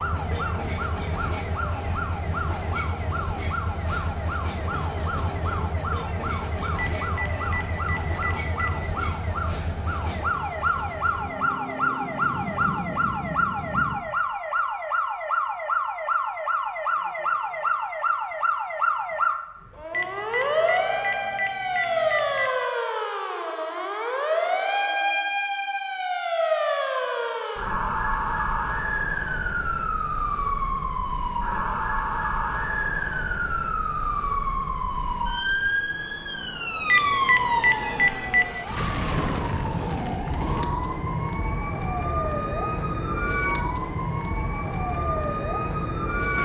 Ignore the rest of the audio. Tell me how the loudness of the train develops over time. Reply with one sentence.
The loudness of the train stays about the same.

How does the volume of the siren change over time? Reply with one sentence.
The loudness of the siren goes up.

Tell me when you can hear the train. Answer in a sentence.
You can hear the train from 0.0 to 14.0 s.